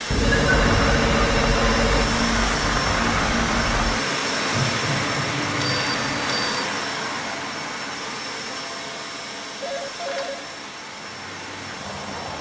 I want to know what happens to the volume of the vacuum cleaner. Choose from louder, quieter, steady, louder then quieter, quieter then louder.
quieter.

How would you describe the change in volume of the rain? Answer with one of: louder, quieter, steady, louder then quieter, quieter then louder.
quieter.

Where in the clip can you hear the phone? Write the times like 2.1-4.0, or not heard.
0.1-2.1, 5.6-6.7, 9.6-10.4.